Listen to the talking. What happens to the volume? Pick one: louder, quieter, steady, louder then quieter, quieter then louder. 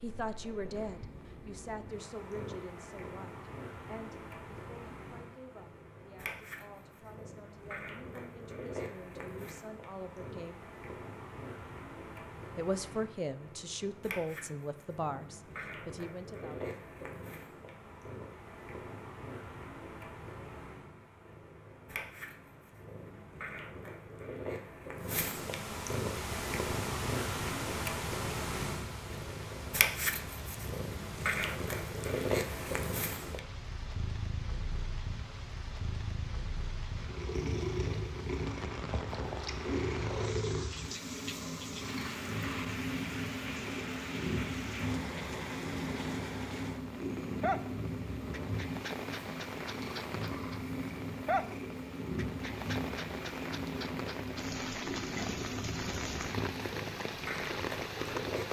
quieter then louder.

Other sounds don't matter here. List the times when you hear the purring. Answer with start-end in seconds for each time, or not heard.
0.0-58.4.